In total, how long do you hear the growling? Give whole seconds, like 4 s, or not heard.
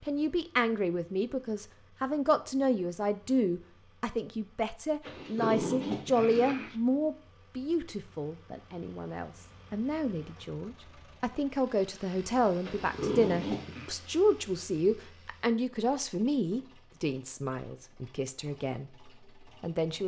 3 s.